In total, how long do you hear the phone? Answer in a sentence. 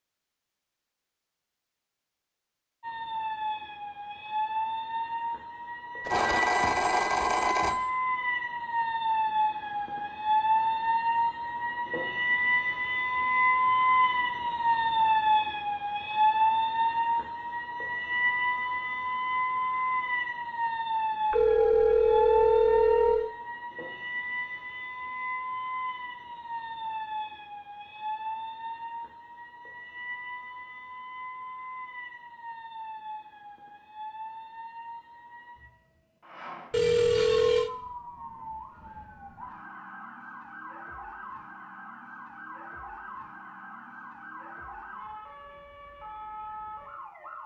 The phone can be heard for 5 seconds in total.